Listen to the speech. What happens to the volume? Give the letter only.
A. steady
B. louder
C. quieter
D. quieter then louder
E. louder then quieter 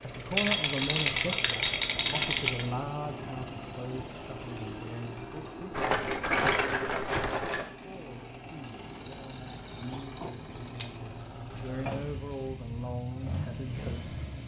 D.